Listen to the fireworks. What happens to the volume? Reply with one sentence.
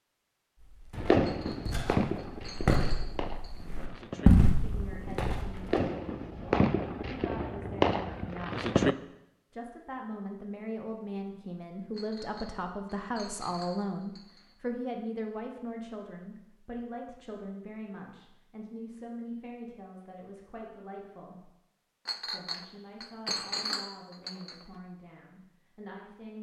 The loudness of the fireworks goes down, then up.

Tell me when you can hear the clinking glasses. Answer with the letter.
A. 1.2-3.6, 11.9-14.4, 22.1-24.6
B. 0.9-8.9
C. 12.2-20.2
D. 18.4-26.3
A.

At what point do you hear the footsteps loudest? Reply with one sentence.
The volume of the footsteps peaks at 4 seconds.